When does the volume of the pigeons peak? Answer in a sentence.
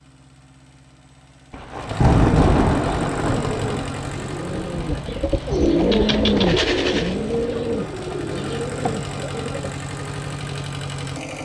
The loudest moment of the pigeons is at 6 seconds.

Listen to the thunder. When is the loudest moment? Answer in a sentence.
The loudest moment of the thunder is at 2 seconds.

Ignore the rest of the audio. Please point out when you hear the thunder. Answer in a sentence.
The thunder can be heard from 1.5 to 5.0 s.